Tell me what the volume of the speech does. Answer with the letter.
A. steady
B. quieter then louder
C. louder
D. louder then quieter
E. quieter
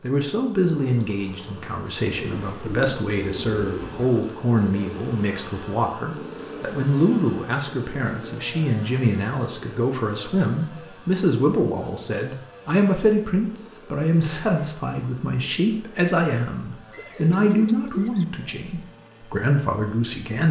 A.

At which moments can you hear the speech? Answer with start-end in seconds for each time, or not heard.
0.0-20.4.